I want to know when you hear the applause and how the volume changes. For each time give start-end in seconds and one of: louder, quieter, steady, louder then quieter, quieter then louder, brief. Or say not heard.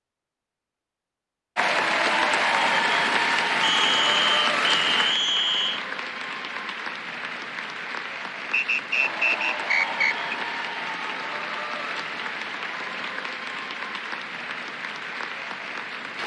1.6-16.2 quieter.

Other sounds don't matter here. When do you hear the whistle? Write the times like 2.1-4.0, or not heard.
3.6-5.8, 8.5-10.2.